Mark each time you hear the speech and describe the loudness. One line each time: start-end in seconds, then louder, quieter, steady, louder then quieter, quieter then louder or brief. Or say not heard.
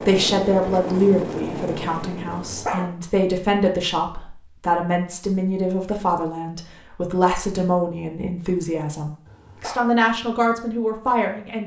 0.1-11.6 steady.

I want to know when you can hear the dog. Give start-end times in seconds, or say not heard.
2.4-2.9, 9.2-9.9.